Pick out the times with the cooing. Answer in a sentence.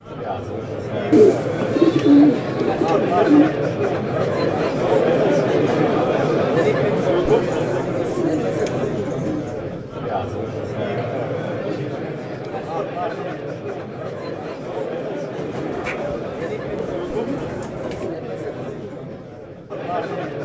The cooing can be heard from 1.1 to 3.5 s, from 7.3 to 9.6 s and from 15.3 to 18.1 s.